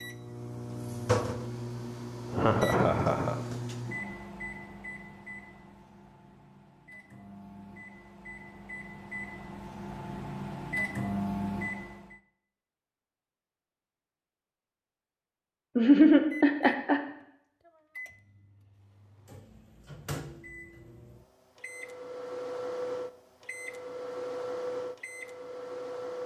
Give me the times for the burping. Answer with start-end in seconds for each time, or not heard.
not heard.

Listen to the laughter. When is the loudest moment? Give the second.
16 s.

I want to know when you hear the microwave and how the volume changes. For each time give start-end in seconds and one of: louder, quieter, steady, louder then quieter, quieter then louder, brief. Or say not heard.
0.0-12.2 quieter then louder
16.3-26.2 louder.